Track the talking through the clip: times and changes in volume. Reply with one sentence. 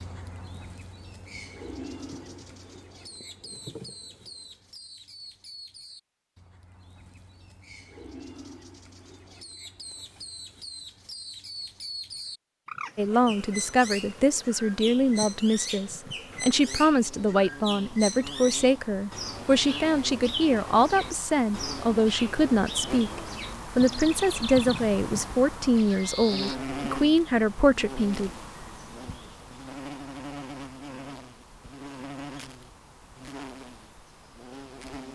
You can hear the talking from 12.9 to 28.3 s, at a steady volume.